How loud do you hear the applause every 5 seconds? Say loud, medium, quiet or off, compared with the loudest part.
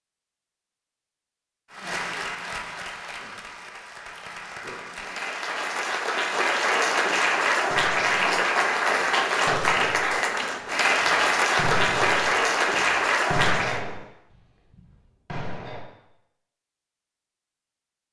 quiet, loud, loud, off.